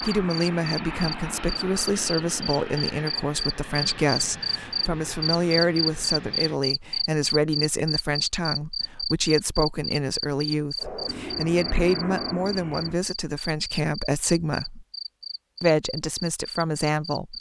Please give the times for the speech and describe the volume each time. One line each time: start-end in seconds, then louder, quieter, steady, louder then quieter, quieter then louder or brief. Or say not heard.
0.0-14.8 steady
15.6-17.3 brief.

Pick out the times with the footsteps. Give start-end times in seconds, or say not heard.
not heard.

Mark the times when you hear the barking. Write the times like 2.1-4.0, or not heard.
not heard.